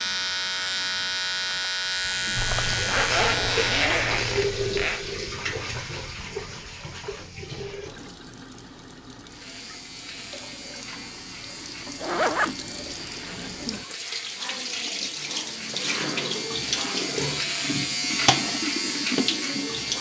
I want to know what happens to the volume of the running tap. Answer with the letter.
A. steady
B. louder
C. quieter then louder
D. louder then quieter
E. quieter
C.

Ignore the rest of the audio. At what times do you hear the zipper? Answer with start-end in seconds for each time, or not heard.
2.4-5.0, 12.0-13.9.